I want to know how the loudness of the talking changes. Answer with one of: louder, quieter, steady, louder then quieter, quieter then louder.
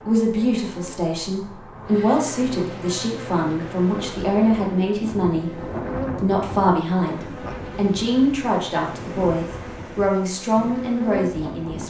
steady.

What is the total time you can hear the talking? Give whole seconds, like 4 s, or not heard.
12 s.